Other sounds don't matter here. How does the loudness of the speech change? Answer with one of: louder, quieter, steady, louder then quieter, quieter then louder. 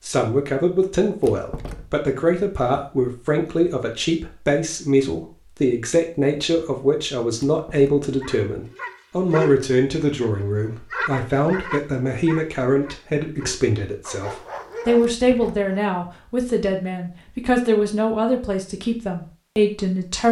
steady.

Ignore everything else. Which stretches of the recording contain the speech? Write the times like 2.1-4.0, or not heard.
0.1-20.2.